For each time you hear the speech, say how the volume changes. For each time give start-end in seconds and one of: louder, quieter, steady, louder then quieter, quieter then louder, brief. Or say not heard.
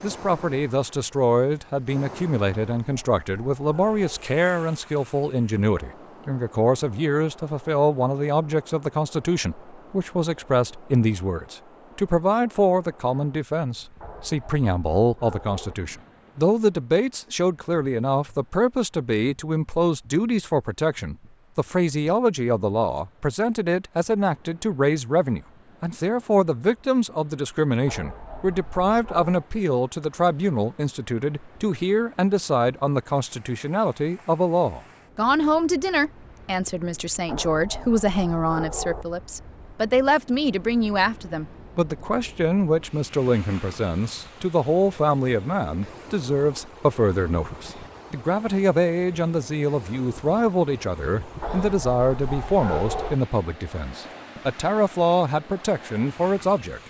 0.0-56.8 steady.